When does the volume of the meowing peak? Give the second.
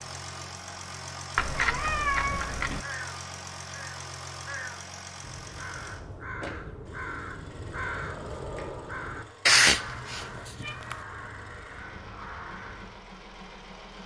10 s.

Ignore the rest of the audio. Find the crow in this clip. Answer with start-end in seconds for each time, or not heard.
2.8-13.0.